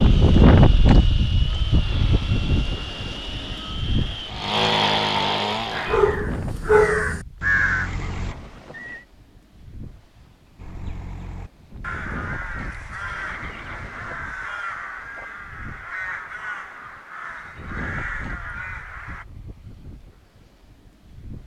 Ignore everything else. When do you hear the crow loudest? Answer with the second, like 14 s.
8 s.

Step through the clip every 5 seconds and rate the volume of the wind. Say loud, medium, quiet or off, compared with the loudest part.
loud, quiet, quiet, quiet, quiet.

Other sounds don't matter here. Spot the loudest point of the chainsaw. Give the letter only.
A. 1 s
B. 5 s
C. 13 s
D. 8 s
B.